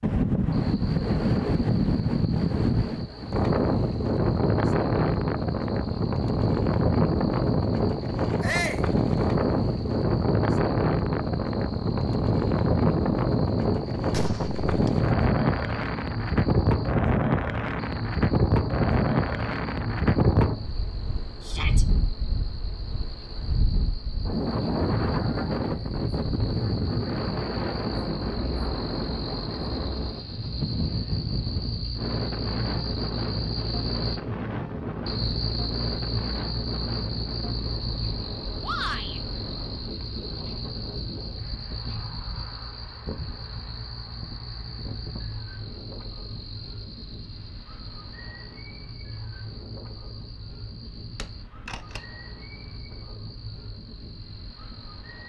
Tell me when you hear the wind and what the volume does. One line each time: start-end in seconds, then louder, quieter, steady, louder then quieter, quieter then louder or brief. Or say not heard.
0.0-55.2 quieter.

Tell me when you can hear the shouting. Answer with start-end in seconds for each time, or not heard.
8.4-8.8, 21.4-21.9, 38.6-39.2.